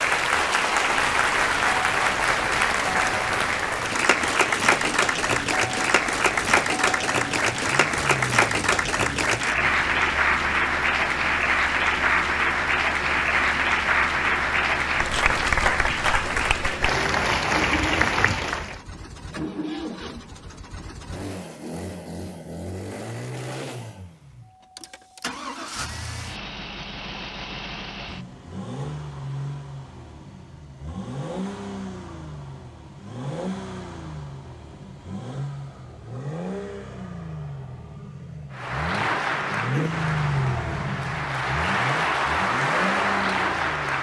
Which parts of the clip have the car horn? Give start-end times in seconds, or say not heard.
not heard.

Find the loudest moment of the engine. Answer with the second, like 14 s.
40 s.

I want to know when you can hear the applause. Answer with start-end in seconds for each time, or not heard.
0.0-18.8, 38.5-43.9.